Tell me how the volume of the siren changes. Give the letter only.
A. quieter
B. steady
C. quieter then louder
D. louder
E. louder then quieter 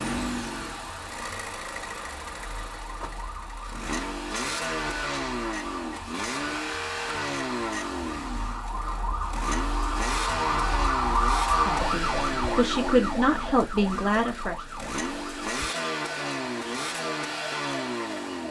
E.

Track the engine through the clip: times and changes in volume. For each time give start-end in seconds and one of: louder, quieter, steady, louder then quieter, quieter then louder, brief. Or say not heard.
0.0-18.4 louder.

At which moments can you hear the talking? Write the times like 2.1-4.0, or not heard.
11.6-14.6.